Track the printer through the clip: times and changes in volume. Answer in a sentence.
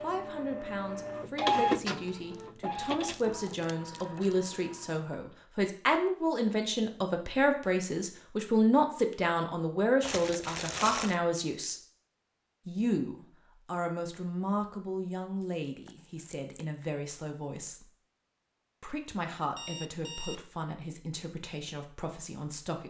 You can hear the printer from 0.0 to 5.3 s, getting louder then quieter.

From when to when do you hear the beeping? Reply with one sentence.
You can hear the beeping from 19.6 to 20.4 s.